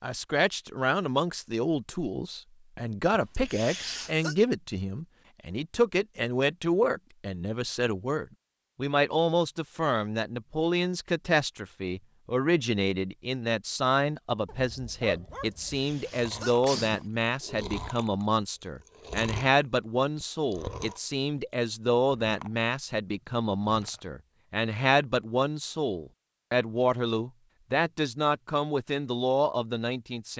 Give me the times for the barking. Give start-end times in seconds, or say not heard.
14.4-15.9.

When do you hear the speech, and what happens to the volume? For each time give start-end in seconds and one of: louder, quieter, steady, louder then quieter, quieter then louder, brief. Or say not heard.
0.0-30.3 steady.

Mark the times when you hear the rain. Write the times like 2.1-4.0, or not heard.
not heard.